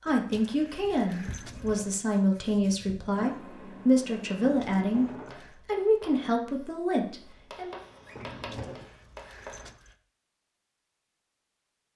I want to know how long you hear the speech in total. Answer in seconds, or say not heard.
7 s.